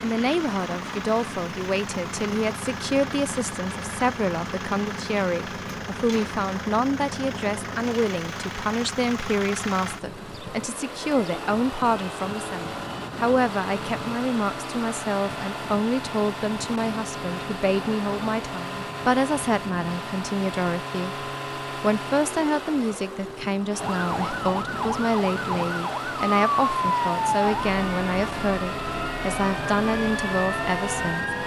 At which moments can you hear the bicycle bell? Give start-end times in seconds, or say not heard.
not heard.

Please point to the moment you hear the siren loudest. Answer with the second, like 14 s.
27 s.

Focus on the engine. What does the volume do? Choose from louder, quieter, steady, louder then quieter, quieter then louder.
steady.